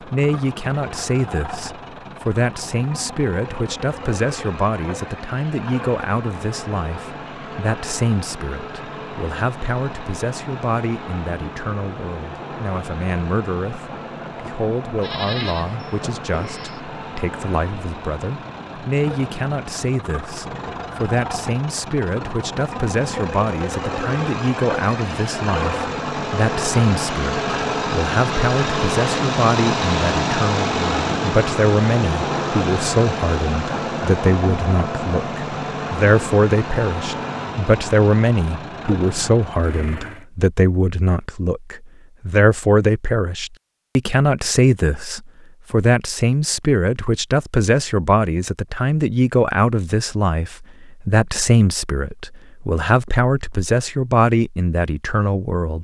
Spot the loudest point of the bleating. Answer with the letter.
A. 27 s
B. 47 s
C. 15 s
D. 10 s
C.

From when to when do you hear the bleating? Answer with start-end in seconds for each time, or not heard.
15.0-16.8.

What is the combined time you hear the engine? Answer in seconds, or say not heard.
40 s.